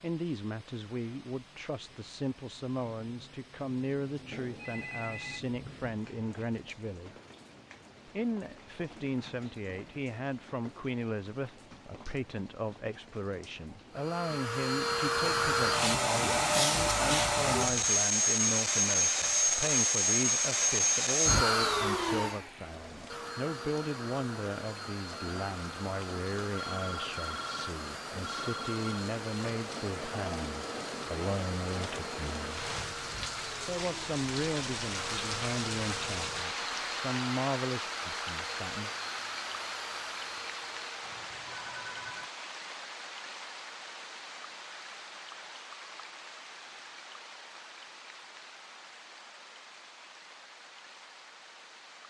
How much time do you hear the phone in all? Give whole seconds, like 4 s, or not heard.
5 s.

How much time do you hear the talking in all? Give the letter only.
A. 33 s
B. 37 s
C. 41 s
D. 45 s
B.